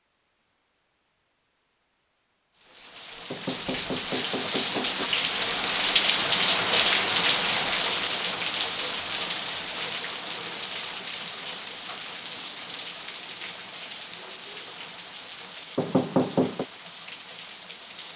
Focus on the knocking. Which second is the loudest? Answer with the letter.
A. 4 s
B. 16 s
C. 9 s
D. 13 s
B.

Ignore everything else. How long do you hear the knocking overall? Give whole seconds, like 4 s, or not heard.
3 s.